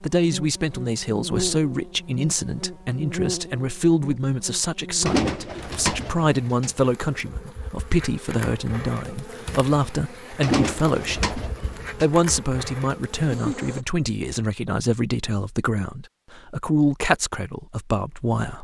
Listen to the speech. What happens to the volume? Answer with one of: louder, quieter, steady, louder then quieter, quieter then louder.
steady.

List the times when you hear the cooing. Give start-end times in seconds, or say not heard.
5.0-6.7, 10.4-12.1.